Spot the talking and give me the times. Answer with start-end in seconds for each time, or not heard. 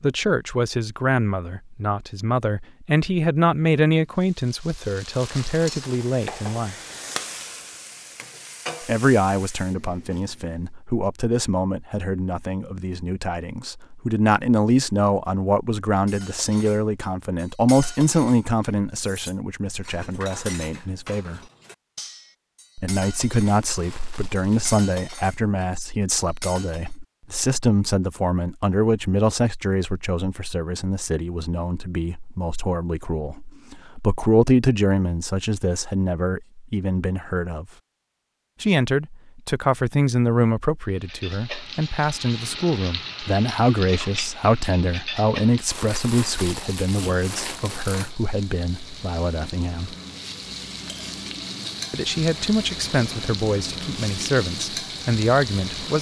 0.0-6.8, 8.8-21.4, 22.8-37.6, 38.6-50.0, 51.9-55.9.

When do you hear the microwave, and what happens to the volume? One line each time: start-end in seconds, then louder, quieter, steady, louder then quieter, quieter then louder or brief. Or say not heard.
not heard.